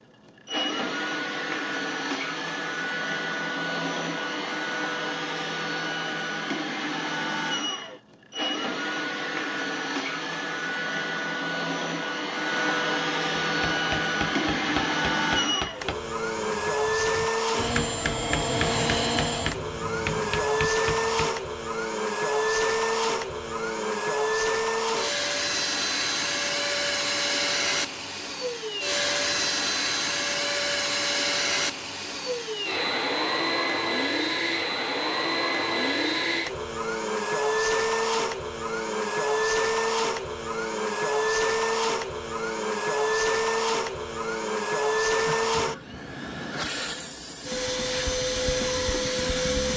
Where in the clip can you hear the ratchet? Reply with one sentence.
The ratchet can't be heard in this clip.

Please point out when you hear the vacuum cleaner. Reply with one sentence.
You can hear the vacuum cleaner from 0.0 to 49.7 s.